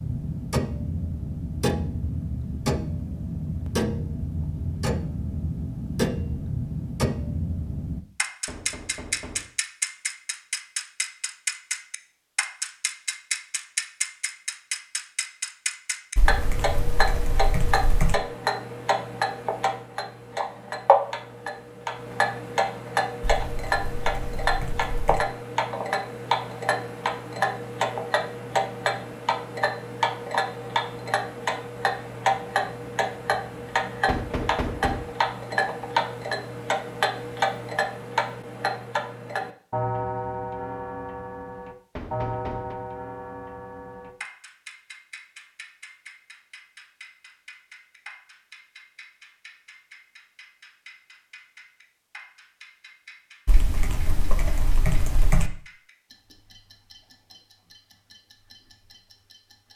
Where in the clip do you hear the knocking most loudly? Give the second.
35 s.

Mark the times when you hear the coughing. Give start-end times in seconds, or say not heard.
not heard.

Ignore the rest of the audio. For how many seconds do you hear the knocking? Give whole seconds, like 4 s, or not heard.
3 s.